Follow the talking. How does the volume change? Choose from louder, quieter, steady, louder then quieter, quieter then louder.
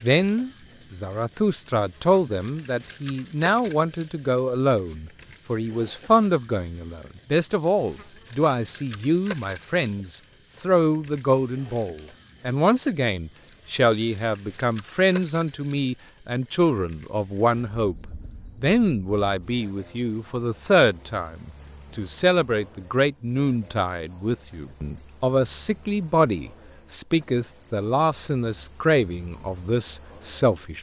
steady.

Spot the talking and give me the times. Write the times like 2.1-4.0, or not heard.
0.0-30.7.